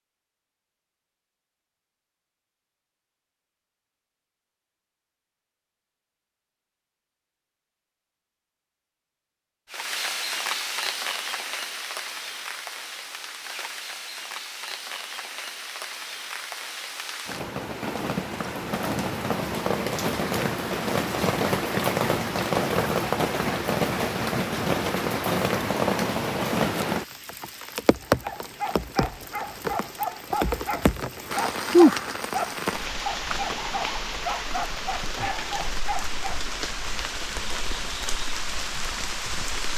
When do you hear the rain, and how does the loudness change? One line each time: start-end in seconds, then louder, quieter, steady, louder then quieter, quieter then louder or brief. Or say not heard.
9.7-39.7 louder then quieter.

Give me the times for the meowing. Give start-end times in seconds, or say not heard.
not heard.